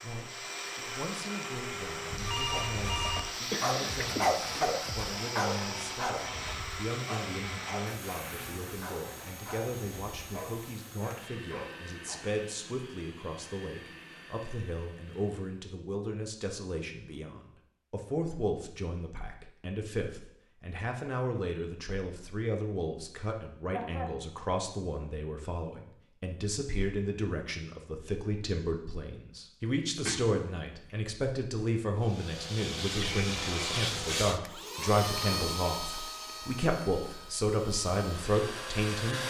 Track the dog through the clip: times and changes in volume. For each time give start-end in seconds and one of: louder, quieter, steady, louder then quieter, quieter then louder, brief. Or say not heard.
2.5-11.9 quieter.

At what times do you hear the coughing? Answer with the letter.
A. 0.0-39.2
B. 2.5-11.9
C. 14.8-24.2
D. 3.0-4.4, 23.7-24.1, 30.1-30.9
D.